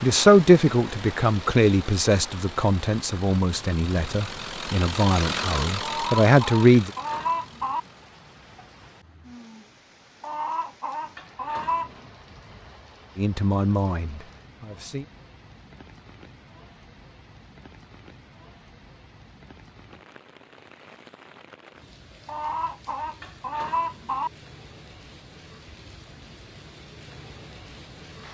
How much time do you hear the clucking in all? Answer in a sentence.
The clucking can be heard for 6 seconds in total.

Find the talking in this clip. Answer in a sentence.
The talking can be heard from 0.0 to 6.9 s and from 13.2 to 15.1 s.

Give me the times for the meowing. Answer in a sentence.
You can't hear the meowing here.